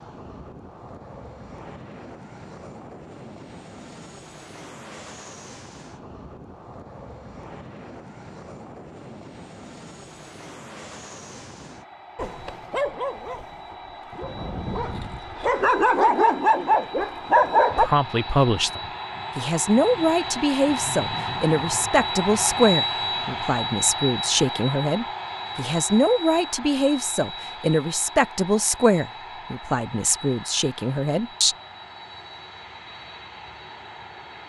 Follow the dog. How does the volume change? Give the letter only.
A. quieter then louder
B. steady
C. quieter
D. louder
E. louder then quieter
A.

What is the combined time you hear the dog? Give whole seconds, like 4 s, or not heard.
6 s.